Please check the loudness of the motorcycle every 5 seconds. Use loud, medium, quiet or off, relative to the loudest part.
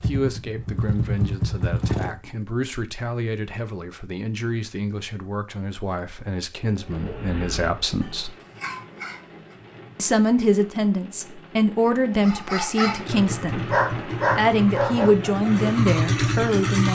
loud, off, medium, loud.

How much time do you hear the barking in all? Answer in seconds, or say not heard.
6 s.